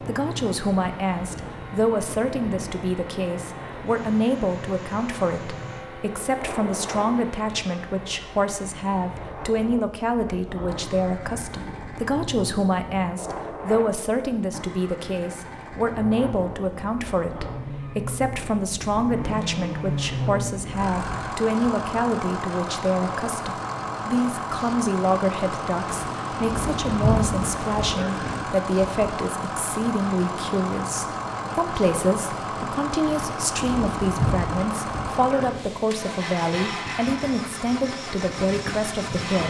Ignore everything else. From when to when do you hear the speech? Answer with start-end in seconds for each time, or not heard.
0.0-39.4.